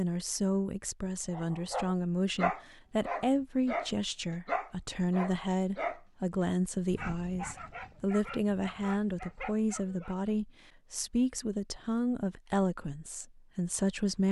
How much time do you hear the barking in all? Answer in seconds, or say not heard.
9 s.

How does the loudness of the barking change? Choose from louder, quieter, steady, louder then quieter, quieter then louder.
quieter.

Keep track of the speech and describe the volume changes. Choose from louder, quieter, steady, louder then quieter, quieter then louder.
steady.